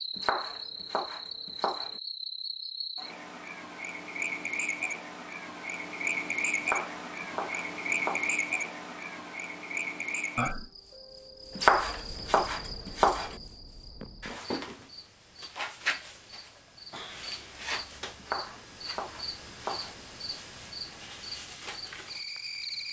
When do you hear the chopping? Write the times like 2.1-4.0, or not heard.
0.1-1.9, 6.5-8.4, 11.6-13.3, 18.1-20.0.